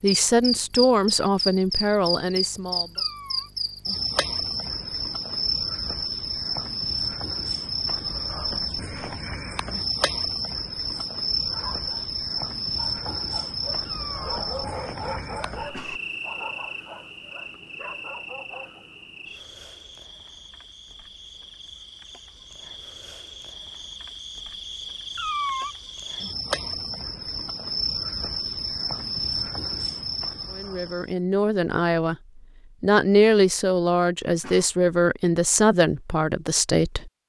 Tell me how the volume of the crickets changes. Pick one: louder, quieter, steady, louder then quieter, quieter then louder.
quieter then louder.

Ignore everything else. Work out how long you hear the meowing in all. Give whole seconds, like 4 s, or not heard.
2 s.